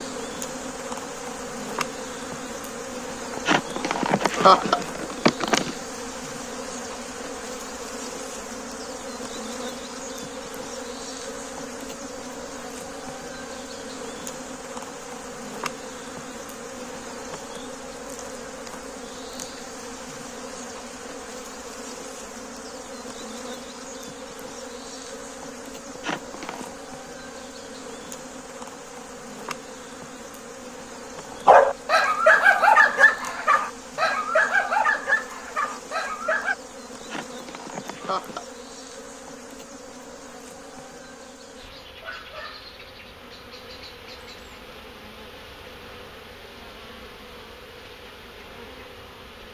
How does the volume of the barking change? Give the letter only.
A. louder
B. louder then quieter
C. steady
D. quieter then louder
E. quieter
E.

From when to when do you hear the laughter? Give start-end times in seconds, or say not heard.
3.3-5.8, 25.9-26.8, 37.0-38.5.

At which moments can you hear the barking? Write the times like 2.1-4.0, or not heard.
31.4-36.5.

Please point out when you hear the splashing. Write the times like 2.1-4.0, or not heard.
not heard.